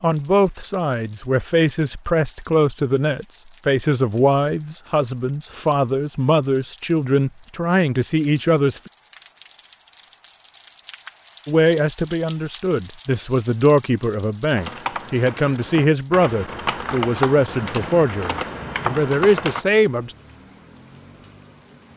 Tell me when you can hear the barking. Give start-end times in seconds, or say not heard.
not heard.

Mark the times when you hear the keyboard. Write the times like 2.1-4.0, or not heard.
14.6-19.6.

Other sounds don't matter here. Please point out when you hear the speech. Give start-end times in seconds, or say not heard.
0.0-8.9, 11.4-20.1.